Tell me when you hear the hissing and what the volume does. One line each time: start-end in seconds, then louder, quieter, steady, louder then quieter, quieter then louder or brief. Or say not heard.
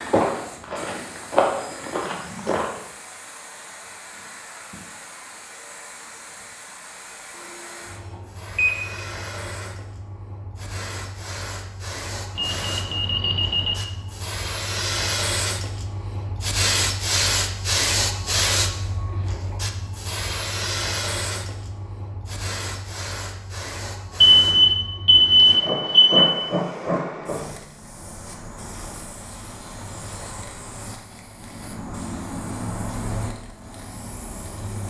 0.0-34.8 louder then quieter.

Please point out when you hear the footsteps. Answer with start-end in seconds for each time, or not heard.
0.0-2.6.